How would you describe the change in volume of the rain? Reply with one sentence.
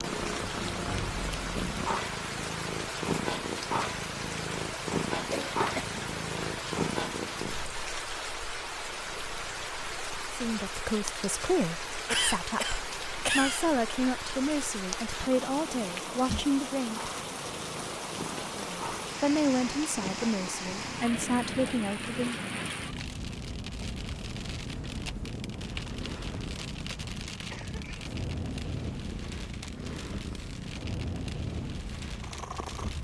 The loudness of the rain stays about the same.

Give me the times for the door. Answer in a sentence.
You can't hear the door here.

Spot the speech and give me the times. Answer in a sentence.
You can hear the speech from 10.3 to 17.2 s and from 18.6 to 22.4 s.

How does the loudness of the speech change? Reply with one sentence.
The loudness of the speech stays about the same.